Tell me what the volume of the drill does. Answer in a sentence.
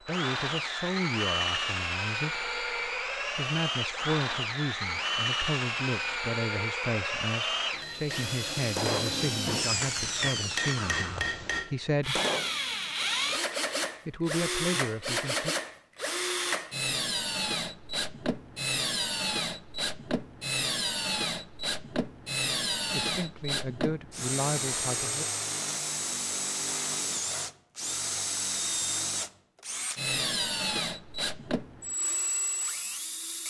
The volume of the drill stays about the same.